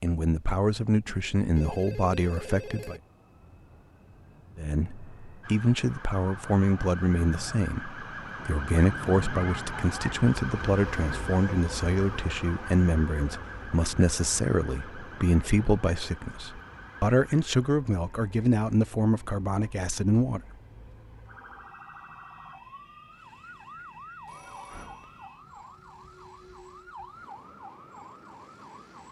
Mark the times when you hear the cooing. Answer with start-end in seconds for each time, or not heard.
not heard.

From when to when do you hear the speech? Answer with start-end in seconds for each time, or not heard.
0.0-3.0, 4.5-20.4.